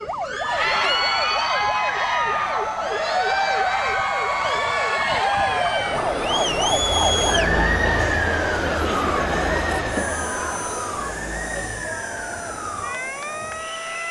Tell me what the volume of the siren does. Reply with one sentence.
The volume of the siren goes up, then down.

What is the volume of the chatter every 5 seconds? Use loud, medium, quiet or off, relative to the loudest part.
loud, loud, medium.